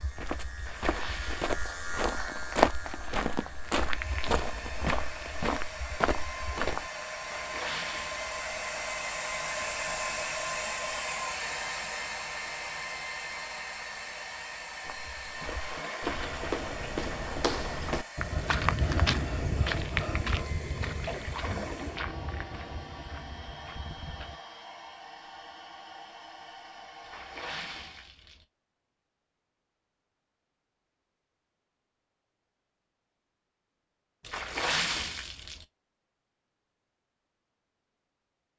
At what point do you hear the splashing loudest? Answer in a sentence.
The loudest moment of the splashing is at 35 seconds.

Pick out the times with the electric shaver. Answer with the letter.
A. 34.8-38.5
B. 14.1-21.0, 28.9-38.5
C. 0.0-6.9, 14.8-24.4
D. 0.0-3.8
D.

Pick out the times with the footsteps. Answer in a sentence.
The footsteps can be heard from 0.0 to 6.9 s and from 14.8 to 24.4 s.